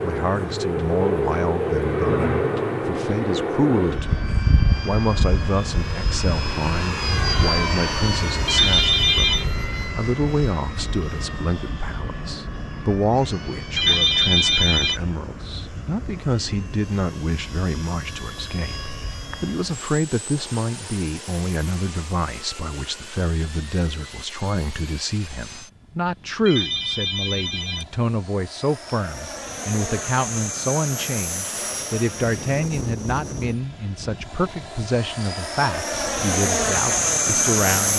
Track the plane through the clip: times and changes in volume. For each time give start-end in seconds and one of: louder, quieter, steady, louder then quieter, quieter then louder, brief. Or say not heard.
0.0-37.9 quieter then louder.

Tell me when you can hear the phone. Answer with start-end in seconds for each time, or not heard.
8.4-9.4, 13.8-15.0, 26.4-27.9.